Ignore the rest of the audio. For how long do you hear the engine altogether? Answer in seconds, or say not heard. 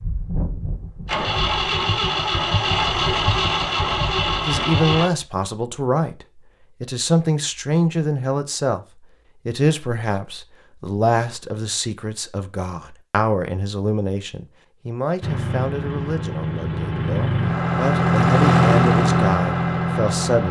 10 s.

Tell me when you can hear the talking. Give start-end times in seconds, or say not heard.
4.5-20.4.